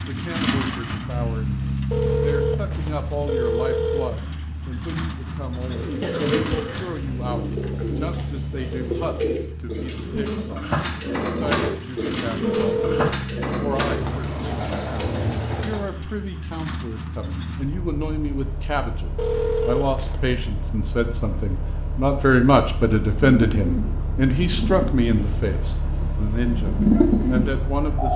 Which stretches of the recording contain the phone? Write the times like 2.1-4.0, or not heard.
1.9-4.2, 12.4-13.2, 19.1-20.4.